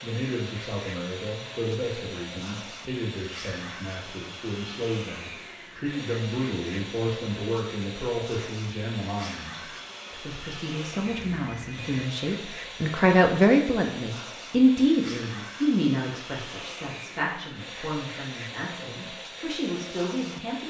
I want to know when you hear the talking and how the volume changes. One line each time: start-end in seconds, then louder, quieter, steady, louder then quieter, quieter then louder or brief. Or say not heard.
0.0-20.6 louder then quieter.